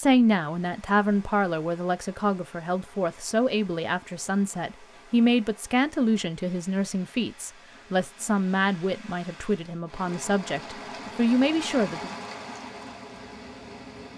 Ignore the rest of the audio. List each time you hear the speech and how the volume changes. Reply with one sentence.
The speech can be heard from 0.0 to 12.1 s, at a steady volume.